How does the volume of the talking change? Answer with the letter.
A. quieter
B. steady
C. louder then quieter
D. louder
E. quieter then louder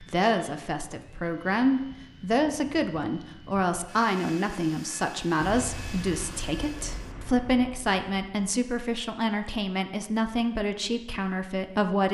B.